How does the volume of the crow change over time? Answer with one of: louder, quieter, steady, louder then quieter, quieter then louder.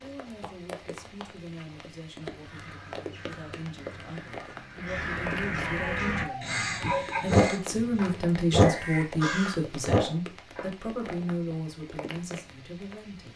louder then quieter.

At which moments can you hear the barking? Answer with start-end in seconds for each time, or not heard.
5.6-11.1.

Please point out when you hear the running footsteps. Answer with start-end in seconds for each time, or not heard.
not heard.